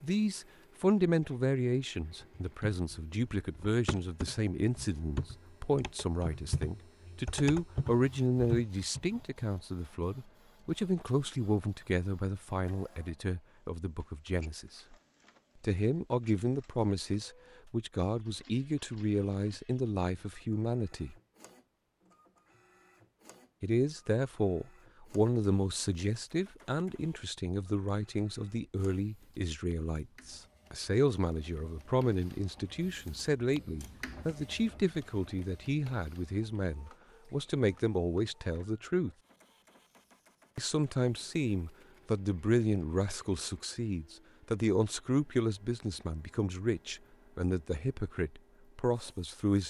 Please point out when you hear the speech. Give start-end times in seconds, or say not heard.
0.0-14.9, 15.6-21.1, 23.6-39.1, 40.5-49.6.